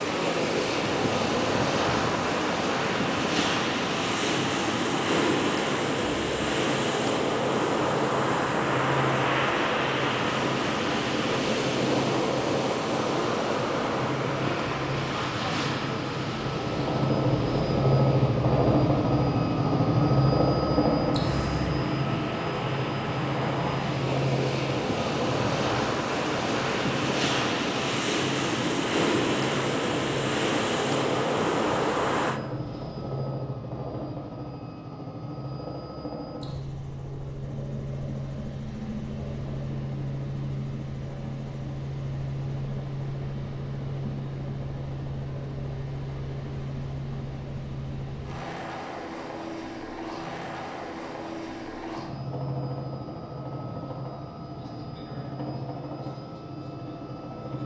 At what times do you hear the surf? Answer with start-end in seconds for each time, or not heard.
0.0-32.4.